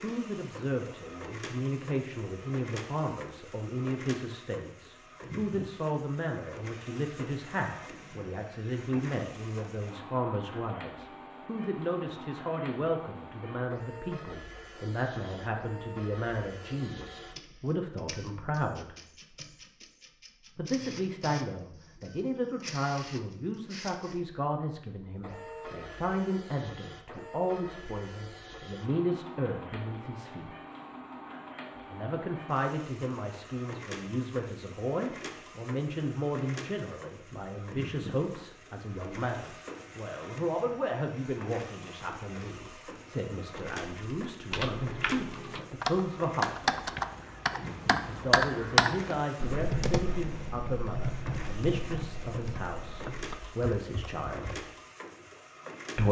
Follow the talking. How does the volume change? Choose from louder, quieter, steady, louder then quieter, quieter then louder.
steady.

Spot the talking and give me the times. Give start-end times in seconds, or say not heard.
0.0-18.9, 20.6-30.5, 31.9-46.9, 48.0-54.5.